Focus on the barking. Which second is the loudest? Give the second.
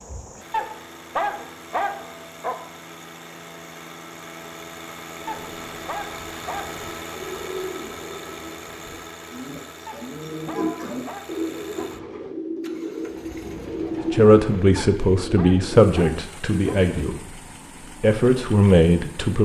1 s.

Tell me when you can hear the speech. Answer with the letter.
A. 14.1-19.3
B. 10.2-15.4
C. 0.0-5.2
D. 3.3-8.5
A.